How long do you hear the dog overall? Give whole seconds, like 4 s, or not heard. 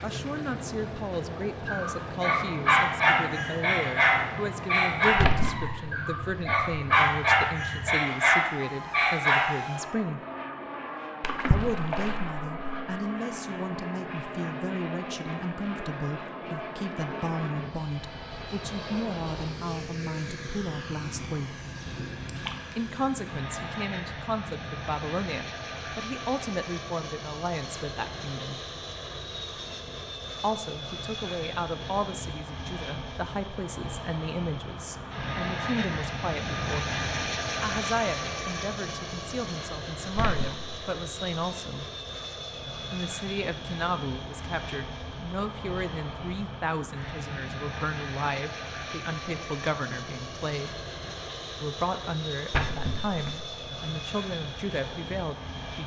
8 s.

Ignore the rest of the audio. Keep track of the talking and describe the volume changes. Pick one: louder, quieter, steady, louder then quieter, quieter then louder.
steady.